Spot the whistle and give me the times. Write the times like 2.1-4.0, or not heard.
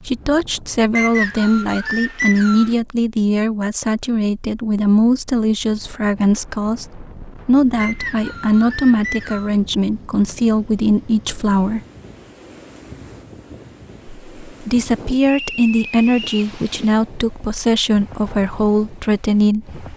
0.9-2.7, 7.8-9.5, 15.2-16.4.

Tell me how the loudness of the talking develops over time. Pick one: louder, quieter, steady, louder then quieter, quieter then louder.
steady.